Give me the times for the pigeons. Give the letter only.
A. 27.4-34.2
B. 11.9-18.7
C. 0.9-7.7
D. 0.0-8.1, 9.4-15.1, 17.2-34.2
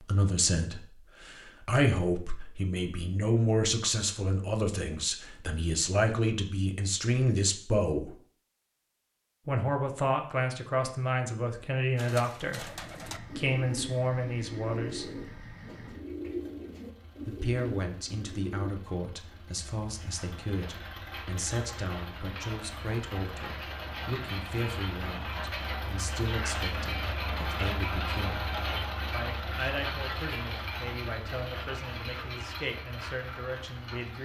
B.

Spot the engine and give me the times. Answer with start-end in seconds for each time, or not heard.
12.6-34.2.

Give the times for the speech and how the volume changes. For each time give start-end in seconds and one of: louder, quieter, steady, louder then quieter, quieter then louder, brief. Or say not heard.
0.0-8.1 steady
9.4-15.1 steady
17.2-34.2 steady.